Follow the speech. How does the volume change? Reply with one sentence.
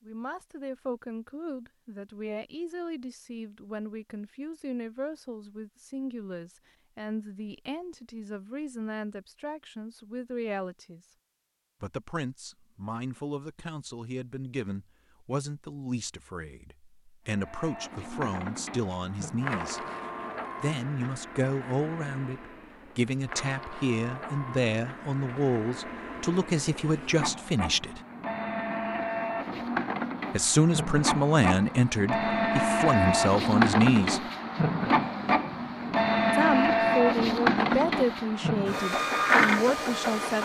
The loudness of the speech goes up.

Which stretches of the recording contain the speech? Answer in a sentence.
The speech can be heard from 0.0 to 11.0 s, from 11.8 to 19.8 s, from 20.6 to 28.0 s, from 30.3 to 34.2 s and from 36.3 to 40.4 s.